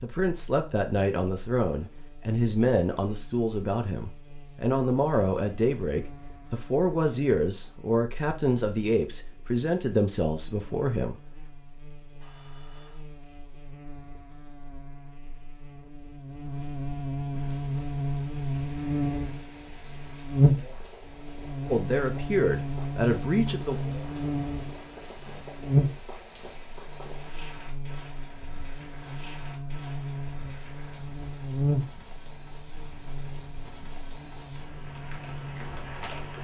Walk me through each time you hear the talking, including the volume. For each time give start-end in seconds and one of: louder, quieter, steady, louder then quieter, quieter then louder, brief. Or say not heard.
0.0-11.2 steady
21.6-23.8 brief.